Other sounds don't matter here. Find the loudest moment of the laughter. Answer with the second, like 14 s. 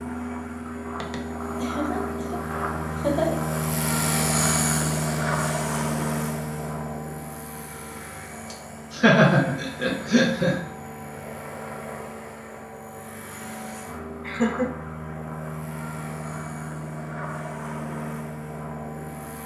9 s.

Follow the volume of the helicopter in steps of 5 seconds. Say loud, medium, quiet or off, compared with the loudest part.
loud, loud, medium, medium.